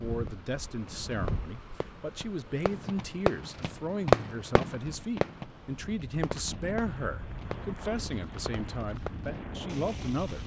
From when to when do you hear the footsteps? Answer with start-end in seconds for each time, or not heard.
not heard.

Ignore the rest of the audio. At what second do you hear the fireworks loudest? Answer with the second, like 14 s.
4 s.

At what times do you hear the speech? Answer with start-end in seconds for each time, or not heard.
0.0-10.4.